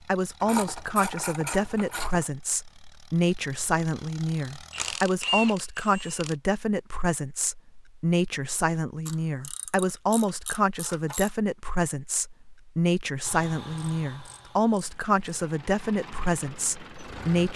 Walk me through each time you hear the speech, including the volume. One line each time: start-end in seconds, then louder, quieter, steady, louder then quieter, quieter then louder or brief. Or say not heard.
0.1-17.5 steady.